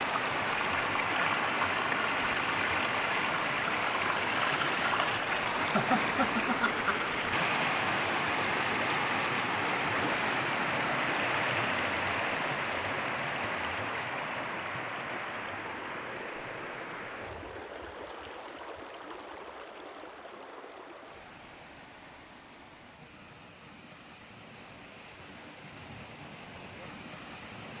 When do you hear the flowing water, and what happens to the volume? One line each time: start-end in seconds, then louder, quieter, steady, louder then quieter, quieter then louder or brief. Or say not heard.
0.0-27.7 quieter.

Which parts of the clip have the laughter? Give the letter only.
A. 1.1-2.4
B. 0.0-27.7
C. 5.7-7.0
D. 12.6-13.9
C.